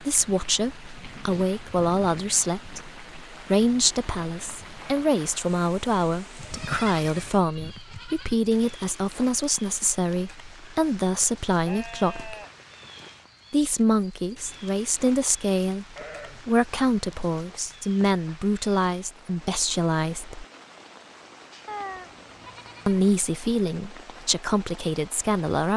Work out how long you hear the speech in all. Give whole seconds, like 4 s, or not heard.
22 s.